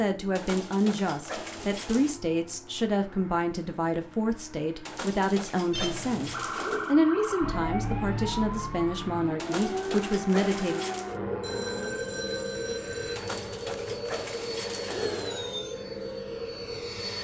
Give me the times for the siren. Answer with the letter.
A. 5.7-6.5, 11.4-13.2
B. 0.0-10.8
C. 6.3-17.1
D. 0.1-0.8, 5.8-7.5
C.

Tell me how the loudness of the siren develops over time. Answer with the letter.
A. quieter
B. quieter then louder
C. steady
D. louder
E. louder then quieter
C.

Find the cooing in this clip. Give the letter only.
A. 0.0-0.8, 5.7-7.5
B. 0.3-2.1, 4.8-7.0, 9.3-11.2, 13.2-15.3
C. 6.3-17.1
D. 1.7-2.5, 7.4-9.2
B.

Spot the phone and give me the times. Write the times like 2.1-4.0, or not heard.
5.7-6.5, 11.4-13.2.